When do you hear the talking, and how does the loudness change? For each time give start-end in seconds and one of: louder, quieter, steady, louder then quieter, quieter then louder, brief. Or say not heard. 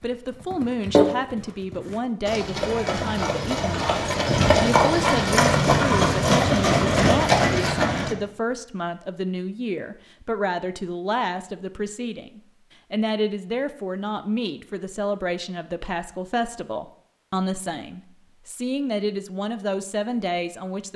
0.0-20.9 steady.